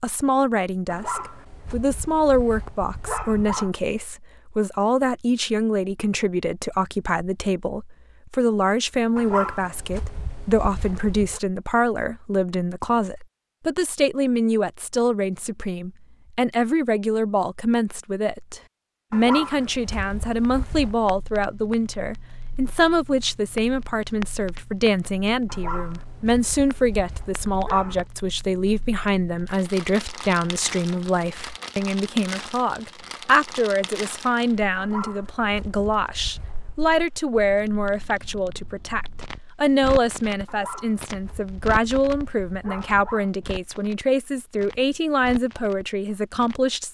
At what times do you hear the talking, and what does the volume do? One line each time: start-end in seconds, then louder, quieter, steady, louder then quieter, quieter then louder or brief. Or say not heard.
0.0-46.8 steady.